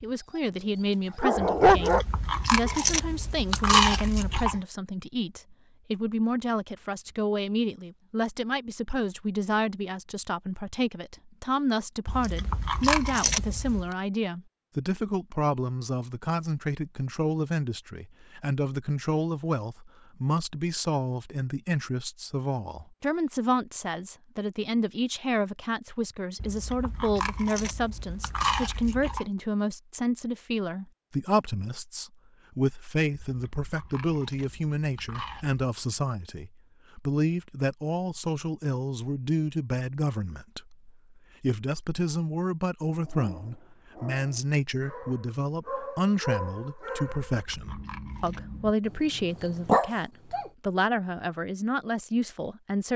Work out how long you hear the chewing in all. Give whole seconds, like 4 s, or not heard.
11 s.